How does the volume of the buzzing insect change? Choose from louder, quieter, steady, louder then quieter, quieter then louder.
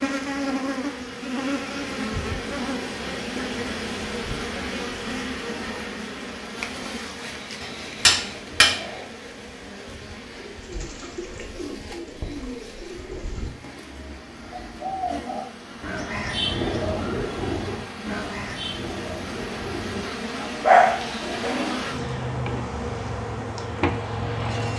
quieter then louder.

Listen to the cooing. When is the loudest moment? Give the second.
17 s.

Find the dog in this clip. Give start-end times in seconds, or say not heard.
20.6-21.6.